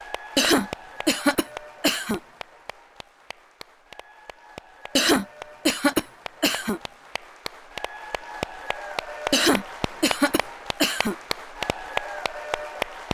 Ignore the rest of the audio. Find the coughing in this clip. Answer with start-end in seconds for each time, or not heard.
0.3-2.2, 5.0-6.8, 9.3-11.2.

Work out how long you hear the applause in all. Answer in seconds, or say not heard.
13 s.